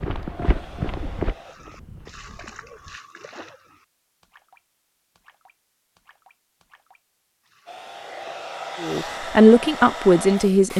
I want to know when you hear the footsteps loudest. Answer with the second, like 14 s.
1 s.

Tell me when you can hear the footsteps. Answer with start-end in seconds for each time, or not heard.
0.0-3.0.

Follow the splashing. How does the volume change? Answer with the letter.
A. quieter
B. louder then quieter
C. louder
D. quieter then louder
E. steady
A.